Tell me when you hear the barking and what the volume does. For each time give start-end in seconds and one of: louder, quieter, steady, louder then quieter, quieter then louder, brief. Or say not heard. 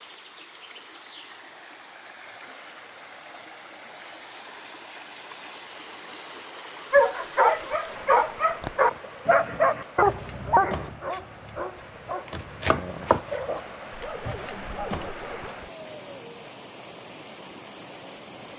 6.9-15.6 quieter.